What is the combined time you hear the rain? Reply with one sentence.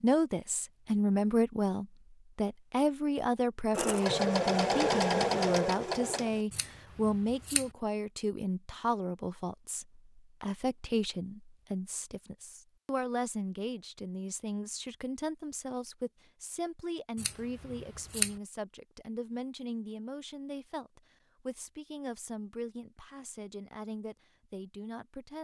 The rain can't be heard in this clip.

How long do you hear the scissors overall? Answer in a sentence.
The scissors can be heard for 2 seconds in total.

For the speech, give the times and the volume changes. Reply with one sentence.
The speech can be heard from 0.0 to 25.3 s, getting quieter.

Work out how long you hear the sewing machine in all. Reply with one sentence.
The sewing machine can be heard for 3 seconds in total.